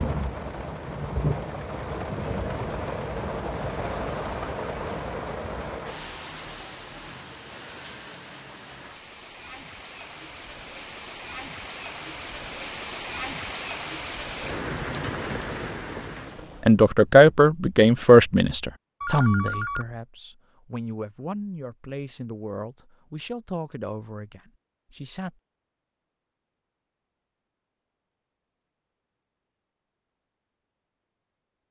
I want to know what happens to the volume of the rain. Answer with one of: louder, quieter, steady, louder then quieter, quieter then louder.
quieter then louder.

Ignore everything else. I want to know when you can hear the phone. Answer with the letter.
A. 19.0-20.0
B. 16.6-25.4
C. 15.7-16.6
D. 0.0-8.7
A.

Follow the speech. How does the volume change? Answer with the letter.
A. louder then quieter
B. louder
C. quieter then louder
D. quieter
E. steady
D.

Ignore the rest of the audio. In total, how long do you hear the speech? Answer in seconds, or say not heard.
9 s.